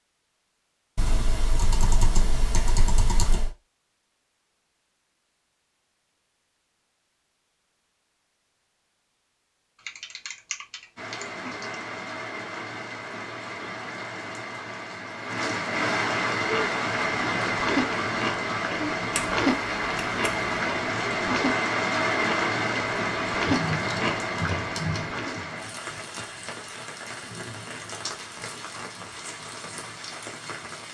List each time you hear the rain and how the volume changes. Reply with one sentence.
You can hear the rain from 10.9 to 30.8 s, getting louder then quieter.